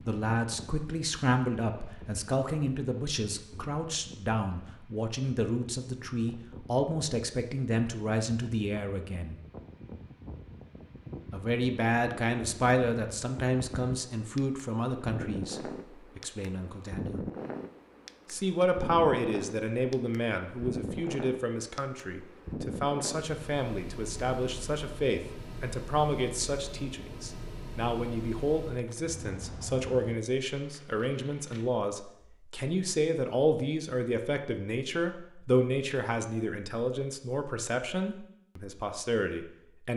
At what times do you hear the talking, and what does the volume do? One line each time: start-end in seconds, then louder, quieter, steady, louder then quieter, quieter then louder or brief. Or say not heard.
0.1-9.3 steady
11.3-17.2 quieter
18.3-39.9 steady.